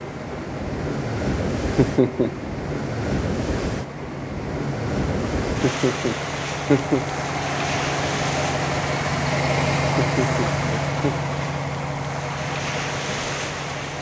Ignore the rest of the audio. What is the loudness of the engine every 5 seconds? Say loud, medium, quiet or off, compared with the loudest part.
medium, loud, loud.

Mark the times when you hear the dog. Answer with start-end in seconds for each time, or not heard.
not heard.